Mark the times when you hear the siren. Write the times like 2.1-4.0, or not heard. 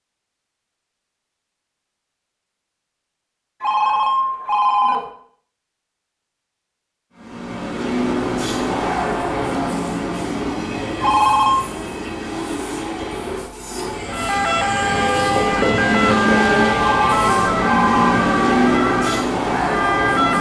14.1-20.3.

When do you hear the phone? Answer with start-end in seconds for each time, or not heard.
3.6-5.1, 11.0-11.7, 16.9-18.2.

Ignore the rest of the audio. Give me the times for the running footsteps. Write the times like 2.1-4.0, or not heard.
not heard.